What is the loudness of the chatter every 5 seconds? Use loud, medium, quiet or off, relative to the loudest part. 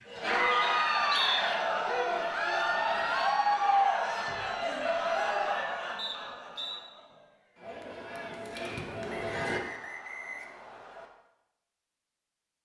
loud, medium, off.